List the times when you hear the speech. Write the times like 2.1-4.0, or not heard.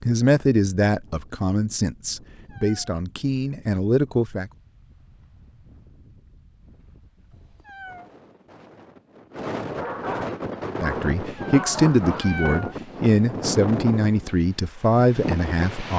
0.0-4.5, 10.8-15.9.